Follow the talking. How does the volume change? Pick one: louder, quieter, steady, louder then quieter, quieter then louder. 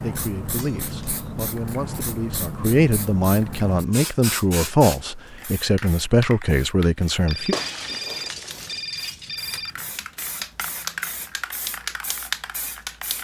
louder.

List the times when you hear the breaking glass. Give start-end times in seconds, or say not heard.
0.6-1.4, 7.5-9.3.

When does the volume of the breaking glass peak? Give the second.
8 s.